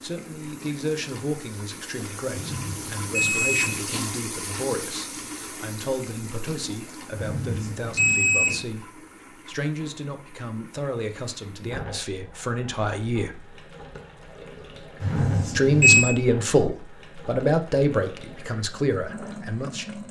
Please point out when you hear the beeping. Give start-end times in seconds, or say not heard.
2.3-3.8, 7.2-8.6, 15.0-16.1.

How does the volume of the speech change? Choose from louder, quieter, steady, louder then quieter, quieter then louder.
louder.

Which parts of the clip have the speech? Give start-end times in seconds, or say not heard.
0.0-13.3, 15.6-19.9.